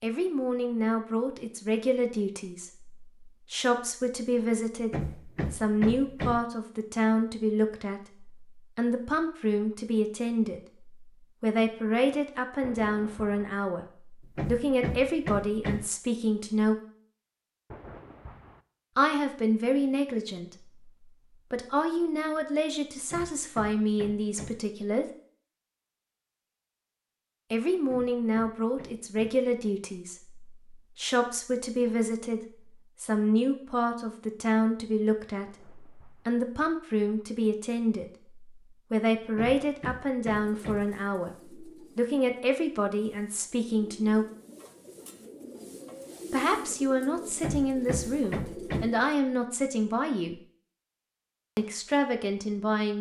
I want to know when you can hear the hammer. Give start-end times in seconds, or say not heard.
4.8-6.5, 14.2-15.9, 22.9-24.6, 27.8-29.4, 39.2-40.9, 47.3-48.9.